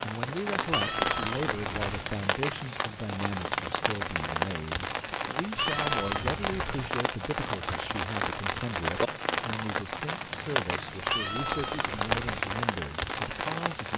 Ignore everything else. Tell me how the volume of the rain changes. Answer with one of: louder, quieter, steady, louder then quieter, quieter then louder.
steady.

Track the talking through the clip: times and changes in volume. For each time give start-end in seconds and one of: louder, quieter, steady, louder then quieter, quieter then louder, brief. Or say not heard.
0.0-13.9 steady.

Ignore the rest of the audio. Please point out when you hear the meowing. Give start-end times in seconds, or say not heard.
0.7-2.0, 5.5-6.9, 11.1-12.4.